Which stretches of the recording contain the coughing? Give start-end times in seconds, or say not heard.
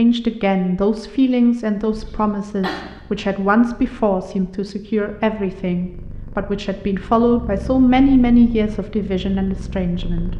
2.0-3.0.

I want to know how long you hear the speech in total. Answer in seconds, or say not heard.
10 s.